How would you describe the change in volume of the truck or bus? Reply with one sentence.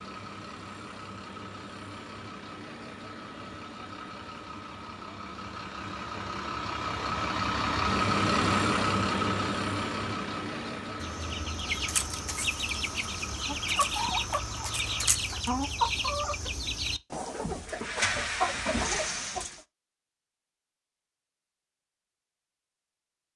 The volume of the truck or bus goes up, then down.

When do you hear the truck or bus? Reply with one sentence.
You can hear the truck or bus from 0.0 to 15.3 s.